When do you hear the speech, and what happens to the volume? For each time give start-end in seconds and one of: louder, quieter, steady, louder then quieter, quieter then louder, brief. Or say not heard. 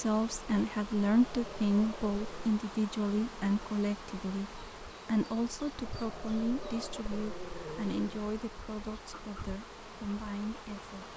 0.0-11.1 quieter.